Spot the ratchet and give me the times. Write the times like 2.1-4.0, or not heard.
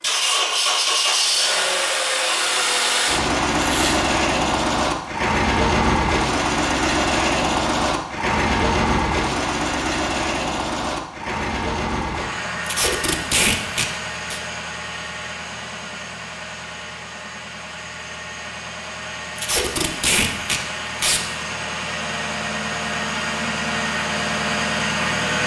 not heard.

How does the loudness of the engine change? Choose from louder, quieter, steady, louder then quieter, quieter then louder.
quieter then louder.